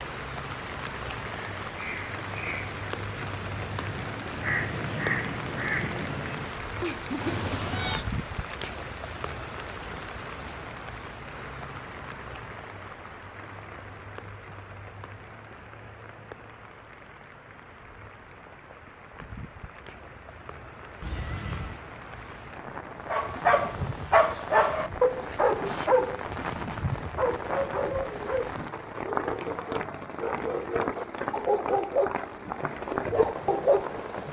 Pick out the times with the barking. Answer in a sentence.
You can hear the barking from 23.1 to 34.0 s.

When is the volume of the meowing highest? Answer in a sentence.
The loudest moment of the meowing is at 8 seconds.